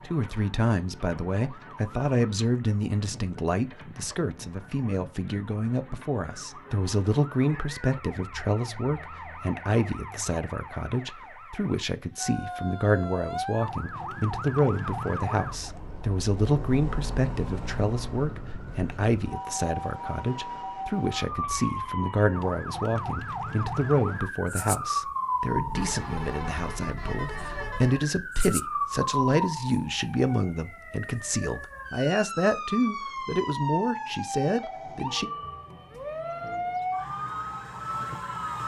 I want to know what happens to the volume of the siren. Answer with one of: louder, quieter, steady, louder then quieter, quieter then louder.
louder.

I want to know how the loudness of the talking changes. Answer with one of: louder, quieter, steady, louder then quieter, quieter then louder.
steady.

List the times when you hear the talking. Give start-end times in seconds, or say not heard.
0.1-35.3.